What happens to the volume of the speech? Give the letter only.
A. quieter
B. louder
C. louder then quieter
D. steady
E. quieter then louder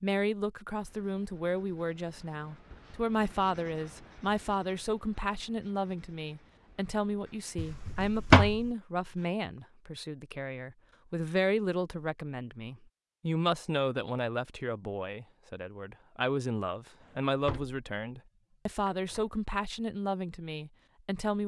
D.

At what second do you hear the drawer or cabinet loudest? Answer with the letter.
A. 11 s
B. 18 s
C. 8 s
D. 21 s
C.